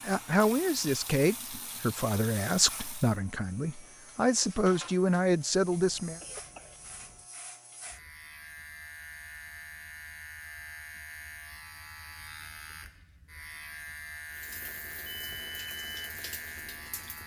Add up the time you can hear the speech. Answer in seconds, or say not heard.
6 s.